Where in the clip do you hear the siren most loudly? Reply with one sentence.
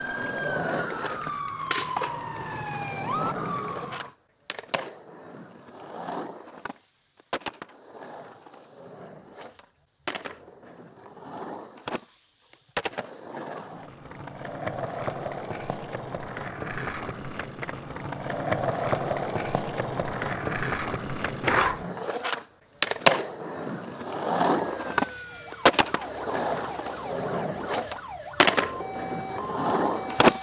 The volume of the siren peaks at 3 seconds.